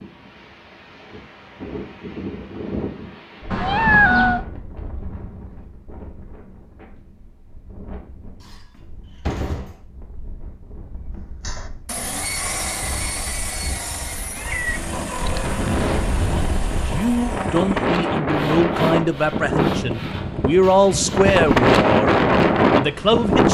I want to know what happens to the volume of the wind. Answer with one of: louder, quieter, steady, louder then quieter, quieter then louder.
quieter then louder.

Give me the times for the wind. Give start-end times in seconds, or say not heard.
0.0-23.4.